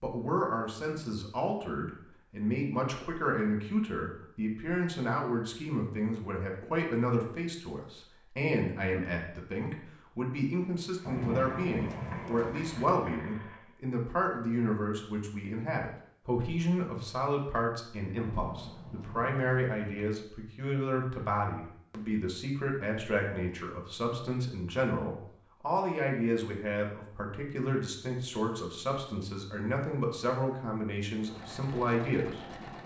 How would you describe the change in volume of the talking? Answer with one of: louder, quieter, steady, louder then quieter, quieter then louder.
steady.